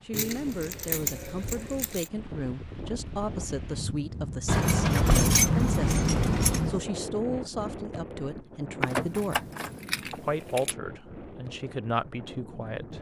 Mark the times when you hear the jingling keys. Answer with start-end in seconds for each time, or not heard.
0.1-2.0, 4.5-6.8, 8.8-10.8.